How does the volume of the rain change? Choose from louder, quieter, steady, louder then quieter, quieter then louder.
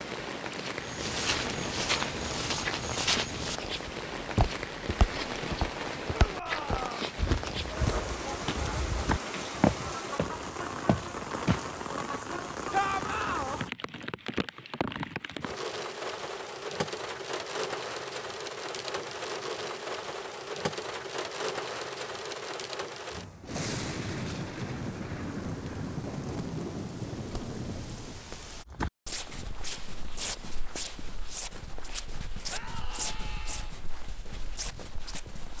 steady.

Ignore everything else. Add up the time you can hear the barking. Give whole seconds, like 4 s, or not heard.
not heard.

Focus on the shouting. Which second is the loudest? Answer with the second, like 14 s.
13 s.